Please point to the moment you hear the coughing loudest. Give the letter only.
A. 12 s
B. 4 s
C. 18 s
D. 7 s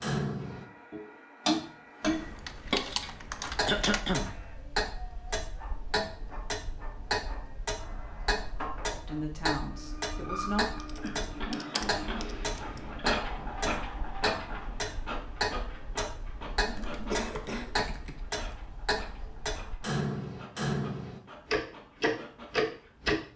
B.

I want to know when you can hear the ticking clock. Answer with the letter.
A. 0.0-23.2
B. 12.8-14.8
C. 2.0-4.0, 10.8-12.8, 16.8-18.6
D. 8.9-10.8
A.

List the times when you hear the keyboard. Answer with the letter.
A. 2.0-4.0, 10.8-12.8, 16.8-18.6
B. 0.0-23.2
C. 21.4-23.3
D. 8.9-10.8
A.